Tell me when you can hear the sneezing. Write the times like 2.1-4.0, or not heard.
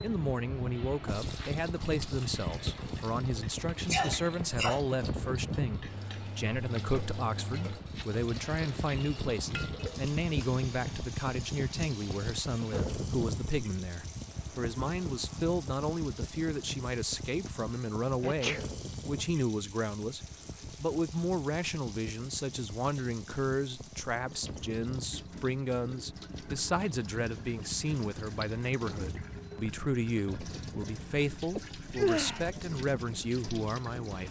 3.9-4.8, 18.2-18.6, 31.6-32.5.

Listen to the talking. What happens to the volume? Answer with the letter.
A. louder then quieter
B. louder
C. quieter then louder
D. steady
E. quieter
D.